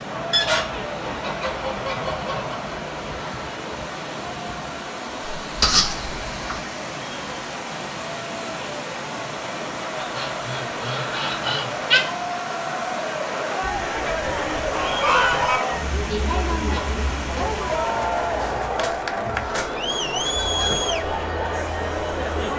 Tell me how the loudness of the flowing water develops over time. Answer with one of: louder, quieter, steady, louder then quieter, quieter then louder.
steady.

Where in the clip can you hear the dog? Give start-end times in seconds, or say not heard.
not heard.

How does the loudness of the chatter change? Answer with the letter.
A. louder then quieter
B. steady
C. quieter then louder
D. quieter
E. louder
E.